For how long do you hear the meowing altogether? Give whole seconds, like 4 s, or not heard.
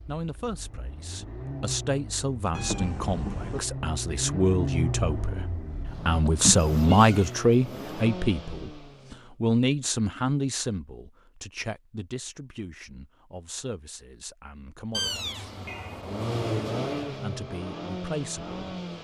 4 s.